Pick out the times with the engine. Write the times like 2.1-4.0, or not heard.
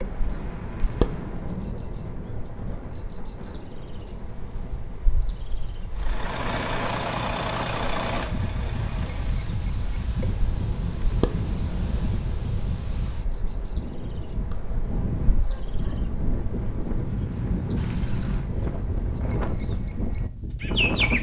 6.0-9.4.